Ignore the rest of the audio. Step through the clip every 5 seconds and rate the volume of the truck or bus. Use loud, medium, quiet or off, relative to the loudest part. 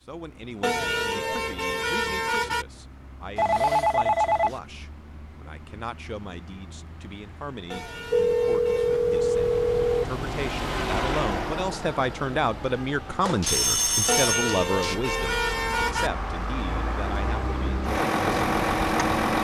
quiet, quiet, medium, loud.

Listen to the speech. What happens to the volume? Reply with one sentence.
The volume of the speech goes up.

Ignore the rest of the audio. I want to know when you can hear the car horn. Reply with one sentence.
The car horn can be heard from 0.6 to 2.6 s, from 7.7 to 9.1 s and from 14.1 to 16.1 s.